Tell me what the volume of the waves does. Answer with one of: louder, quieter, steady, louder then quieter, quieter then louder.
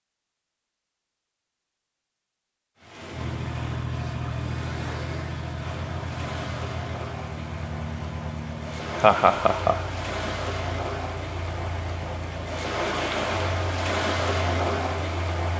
louder.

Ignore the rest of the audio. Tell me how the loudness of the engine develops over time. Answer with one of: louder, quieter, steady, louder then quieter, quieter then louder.
quieter.